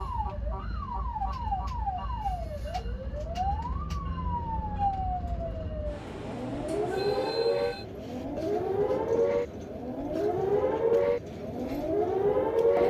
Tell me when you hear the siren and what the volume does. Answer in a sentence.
You can hear the siren from 0.0 to 12.8 s, getting louder.